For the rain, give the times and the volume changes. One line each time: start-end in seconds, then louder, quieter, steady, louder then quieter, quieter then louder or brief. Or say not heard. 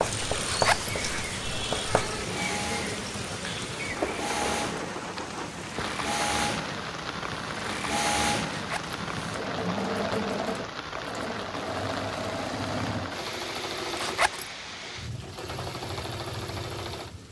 0.0-17.2 quieter.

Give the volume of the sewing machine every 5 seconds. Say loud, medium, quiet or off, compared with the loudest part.
loud, loud, loud, medium.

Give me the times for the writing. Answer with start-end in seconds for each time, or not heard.
0.0-2.2.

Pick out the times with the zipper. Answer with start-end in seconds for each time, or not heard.
0.4-0.9, 8.5-9.0, 13.9-14.4.